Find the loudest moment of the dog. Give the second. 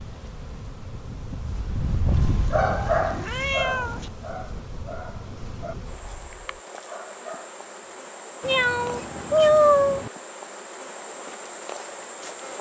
3 s.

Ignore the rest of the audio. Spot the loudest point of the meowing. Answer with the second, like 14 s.
10 s.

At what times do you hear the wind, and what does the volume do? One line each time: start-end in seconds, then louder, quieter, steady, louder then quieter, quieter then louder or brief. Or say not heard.
0.0-6.6 louder then quieter.